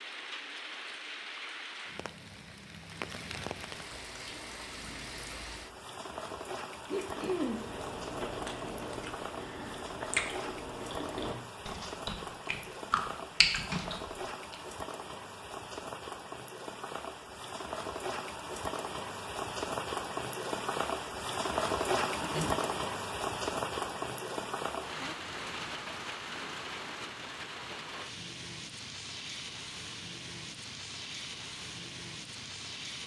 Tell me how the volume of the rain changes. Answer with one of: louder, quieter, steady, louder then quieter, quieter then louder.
louder then quieter.